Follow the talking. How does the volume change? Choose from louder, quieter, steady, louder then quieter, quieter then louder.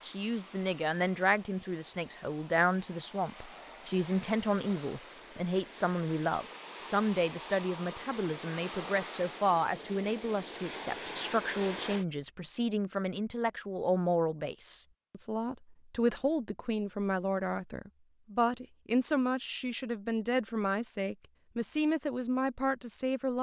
steady.